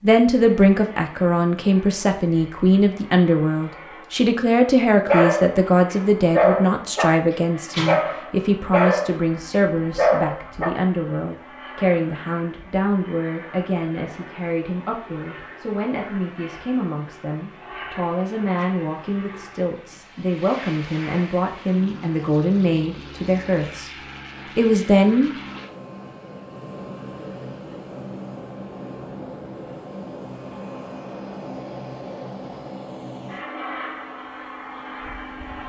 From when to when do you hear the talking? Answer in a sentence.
You can hear the talking from 0.0 to 23.9 s and from 24.6 to 25.3 s.